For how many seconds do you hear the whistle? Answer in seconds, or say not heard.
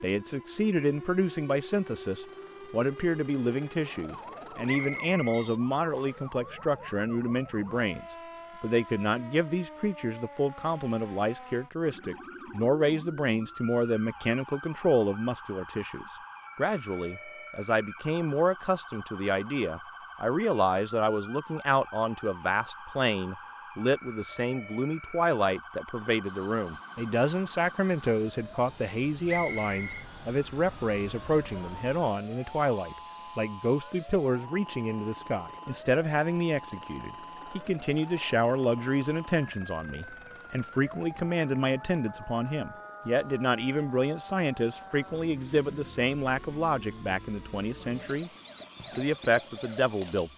2 s.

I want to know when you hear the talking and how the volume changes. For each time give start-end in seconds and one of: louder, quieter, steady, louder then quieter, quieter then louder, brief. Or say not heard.
0.0-48.3 steady
49.0-50.3 brief.